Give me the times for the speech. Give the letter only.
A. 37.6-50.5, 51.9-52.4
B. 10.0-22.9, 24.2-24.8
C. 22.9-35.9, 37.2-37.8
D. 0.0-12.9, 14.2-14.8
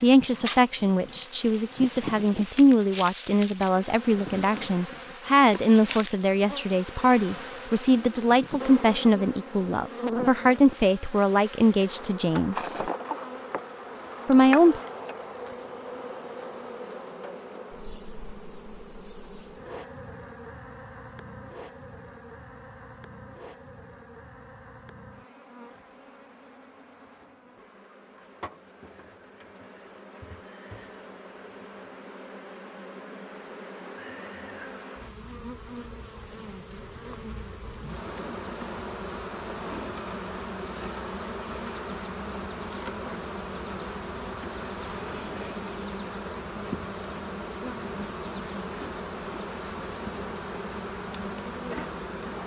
D.